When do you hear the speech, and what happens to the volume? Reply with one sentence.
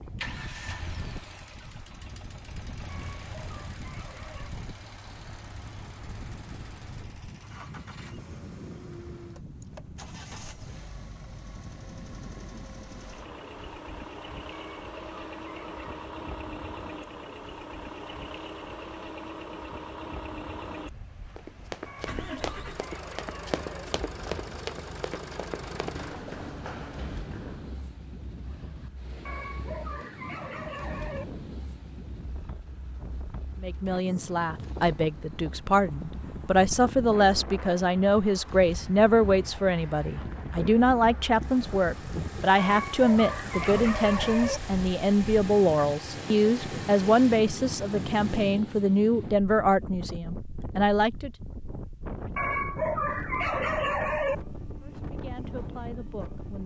The speech can be heard from 33.6 to 51.3 s, at a steady volume; and briefly from 54.8 to 56.6 s.